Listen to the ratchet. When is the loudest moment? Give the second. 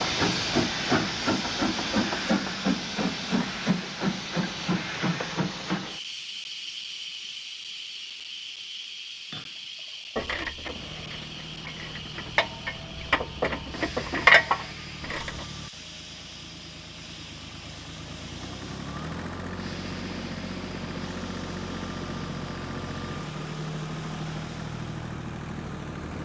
14 s.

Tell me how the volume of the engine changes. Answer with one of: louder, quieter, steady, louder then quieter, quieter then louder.
louder.